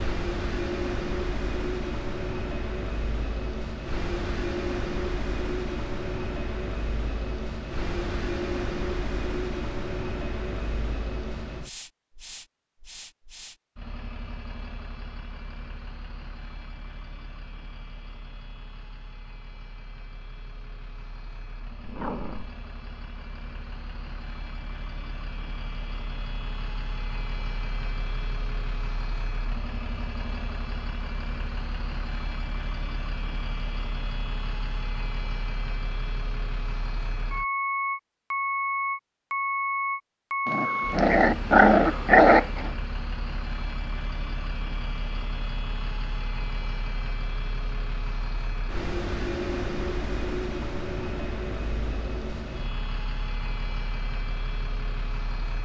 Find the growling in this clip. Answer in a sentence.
You can hear the growling from 21.8 to 22.6 s and from 40.5 to 42.7 s.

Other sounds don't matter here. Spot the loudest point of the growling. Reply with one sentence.
The volume of the growling peaks at 42 seconds.